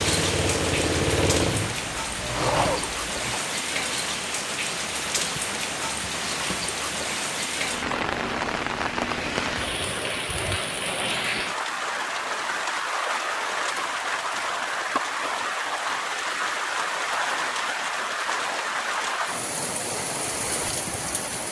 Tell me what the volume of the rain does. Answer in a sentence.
The volume of the rain stays about the same.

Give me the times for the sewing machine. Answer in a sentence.
You can hear the sewing machine from 0.0 to 3.4 s.